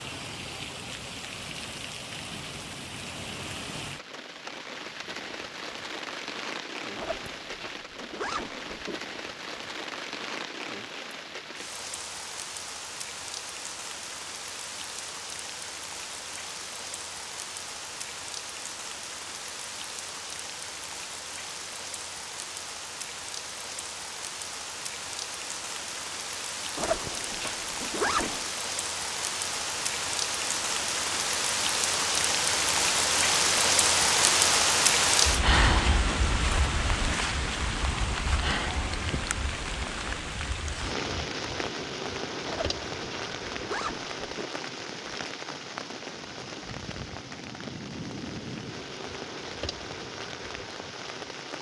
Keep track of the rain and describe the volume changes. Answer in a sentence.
The loudness of the rain goes up, then down.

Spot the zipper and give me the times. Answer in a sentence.
You can hear the zipper from 7.0 to 9.0 s, from 26.8 to 28.4 s and from 42.5 to 44.5 s.